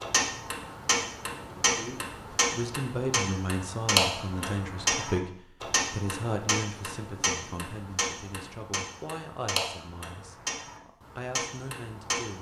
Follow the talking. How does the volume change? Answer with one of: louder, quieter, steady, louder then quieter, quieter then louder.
quieter.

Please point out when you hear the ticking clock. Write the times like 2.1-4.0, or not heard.
0.0-12.3.